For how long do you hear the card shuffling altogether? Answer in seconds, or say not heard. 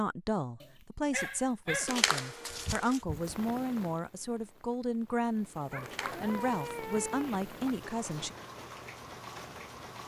2 s.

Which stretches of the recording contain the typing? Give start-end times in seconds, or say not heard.
not heard.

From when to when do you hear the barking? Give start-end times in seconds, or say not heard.
0.6-3.4, 5.7-7.7.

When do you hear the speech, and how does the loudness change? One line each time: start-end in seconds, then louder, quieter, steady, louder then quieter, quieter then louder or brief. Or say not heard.
0.0-8.3 steady.